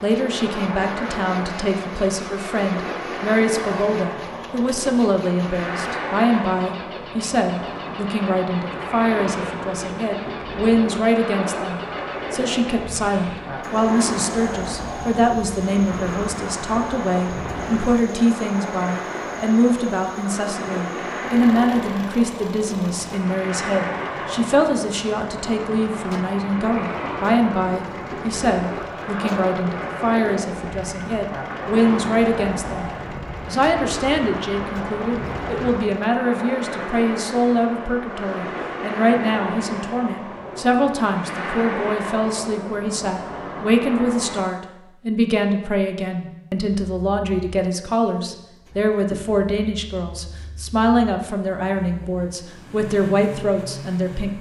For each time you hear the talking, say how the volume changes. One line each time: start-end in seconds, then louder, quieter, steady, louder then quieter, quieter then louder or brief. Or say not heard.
0.0-54.3 steady.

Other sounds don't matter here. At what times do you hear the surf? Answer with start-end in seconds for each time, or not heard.
0.0-44.5.